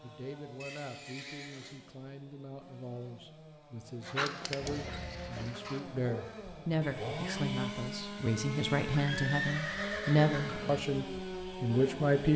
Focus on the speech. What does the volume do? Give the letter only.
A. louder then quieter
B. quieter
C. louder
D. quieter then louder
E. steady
C.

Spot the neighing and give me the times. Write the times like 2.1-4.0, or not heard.
0.6-1.8, 4.5-5.5, 8.9-10.8.